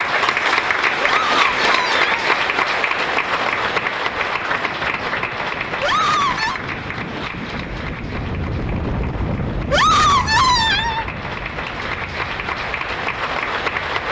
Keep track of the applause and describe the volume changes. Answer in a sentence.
The volume of the applause goes down, then up.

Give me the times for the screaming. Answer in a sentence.
The screaming can be heard from 1.0 to 2.1 s, from 5.8 to 6.6 s and from 9.7 to 11.1 s.